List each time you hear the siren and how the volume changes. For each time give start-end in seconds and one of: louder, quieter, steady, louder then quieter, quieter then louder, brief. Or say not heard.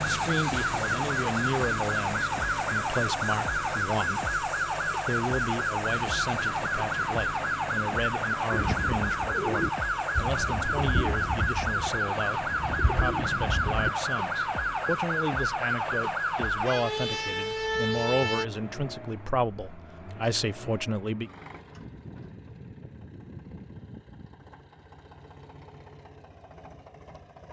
0.0-18.4 steady.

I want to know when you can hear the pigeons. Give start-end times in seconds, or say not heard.
8.5-13.9.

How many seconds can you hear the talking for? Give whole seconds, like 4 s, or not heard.
21 s.